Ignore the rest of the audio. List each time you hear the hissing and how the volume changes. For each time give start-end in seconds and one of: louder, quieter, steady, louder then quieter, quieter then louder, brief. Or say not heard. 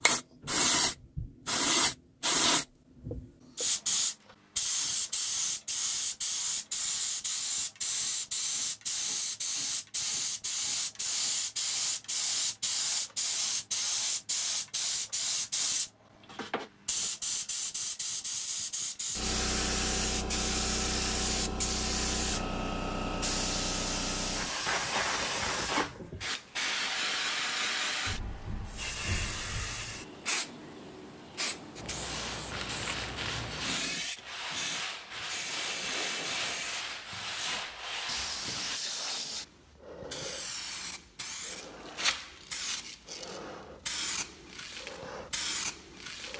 0.0-46.3 quieter.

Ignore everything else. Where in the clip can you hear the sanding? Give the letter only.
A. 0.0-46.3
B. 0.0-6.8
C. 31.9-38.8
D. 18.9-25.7
C.